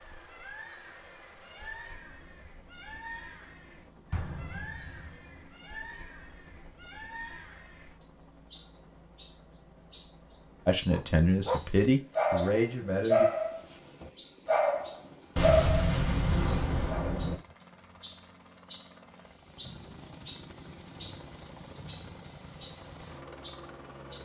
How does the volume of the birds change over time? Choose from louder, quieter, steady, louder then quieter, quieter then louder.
louder.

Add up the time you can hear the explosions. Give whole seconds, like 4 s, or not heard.
3 s.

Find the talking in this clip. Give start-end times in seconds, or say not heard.
10.7-13.2.